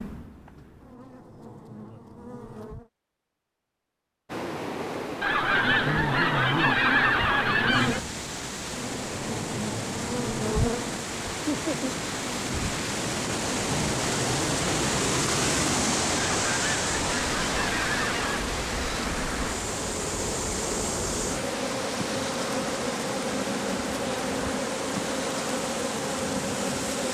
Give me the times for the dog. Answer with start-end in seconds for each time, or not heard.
not heard.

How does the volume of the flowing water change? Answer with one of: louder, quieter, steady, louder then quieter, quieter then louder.
louder then quieter.